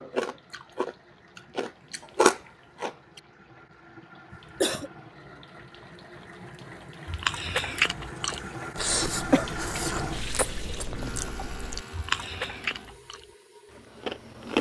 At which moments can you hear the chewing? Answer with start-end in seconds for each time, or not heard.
0.0-3.2, 7.0-14.5.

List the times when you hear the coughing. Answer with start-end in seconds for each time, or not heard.
4.3-4.9, 8.3-9.4.